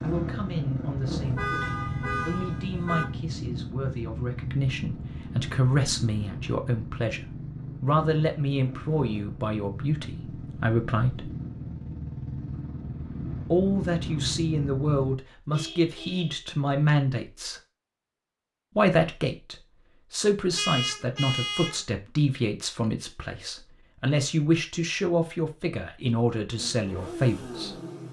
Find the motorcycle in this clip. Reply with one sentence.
The motorcycle can be heard from 0.0 to 15.2 s and from 26.6 to 28.0 s.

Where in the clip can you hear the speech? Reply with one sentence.
You can hear the speech from 0.0 to 11.3 s, from 13.5 to 17.6 s and from 18.8 to 27.8 s.